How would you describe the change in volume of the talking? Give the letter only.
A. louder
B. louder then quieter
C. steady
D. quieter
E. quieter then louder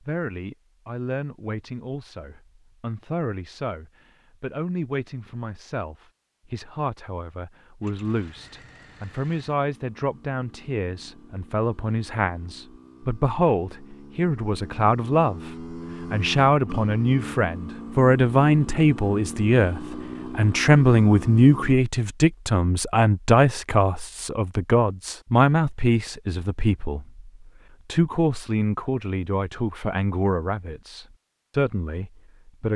B.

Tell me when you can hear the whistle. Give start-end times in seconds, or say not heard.
not heard.